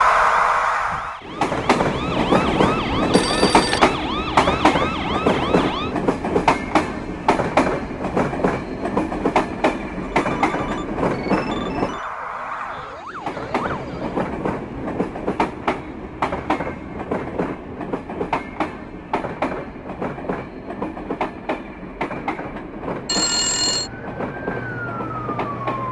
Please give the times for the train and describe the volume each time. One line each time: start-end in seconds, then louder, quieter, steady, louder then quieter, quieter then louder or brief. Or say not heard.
0.0-25.8 quieter.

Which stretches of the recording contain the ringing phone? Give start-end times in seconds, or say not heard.
2.9-3.9, 10.0-12.2, 23.1-23.9.